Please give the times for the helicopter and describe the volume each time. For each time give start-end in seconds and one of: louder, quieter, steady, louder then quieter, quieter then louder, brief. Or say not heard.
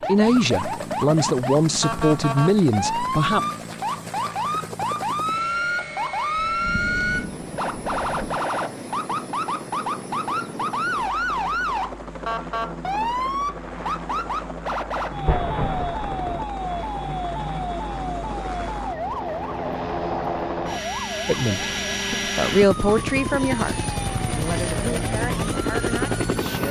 0.0-26.6 louder.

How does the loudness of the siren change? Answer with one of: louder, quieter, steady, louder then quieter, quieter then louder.
quieter.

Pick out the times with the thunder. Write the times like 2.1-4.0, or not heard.
6.3-8.4, 15.2-16.4.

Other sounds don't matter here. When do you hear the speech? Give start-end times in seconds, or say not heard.
0.1-3.4, 21.2-26.6.